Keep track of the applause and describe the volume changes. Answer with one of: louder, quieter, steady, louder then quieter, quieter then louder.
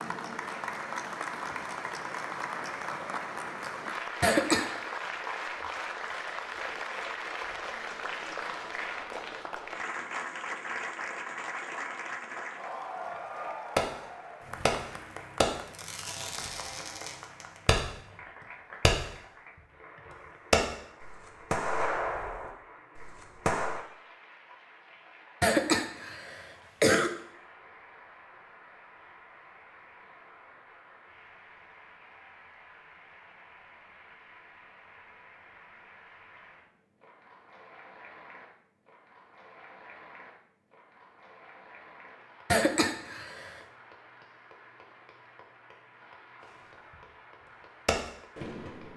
quieter.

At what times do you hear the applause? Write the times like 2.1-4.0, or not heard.
0.0-48.9.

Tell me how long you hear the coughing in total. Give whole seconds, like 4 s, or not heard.
3 s.